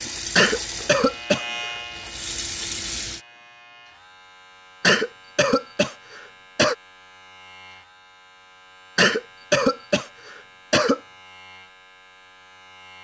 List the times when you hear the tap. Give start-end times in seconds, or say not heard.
0.0-3.2.